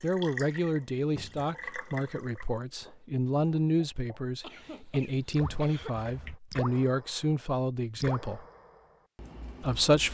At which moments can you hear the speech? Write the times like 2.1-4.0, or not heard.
0.0-8.4, 9.6-10.0.